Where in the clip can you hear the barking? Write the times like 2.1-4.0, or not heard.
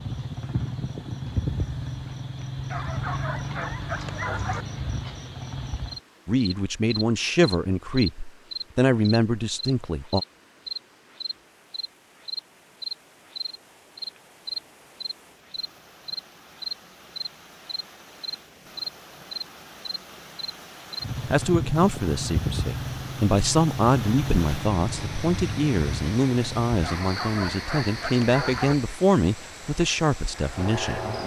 2.7-4.7, 26.8-28.8.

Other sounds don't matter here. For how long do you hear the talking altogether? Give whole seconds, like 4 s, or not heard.
14 s.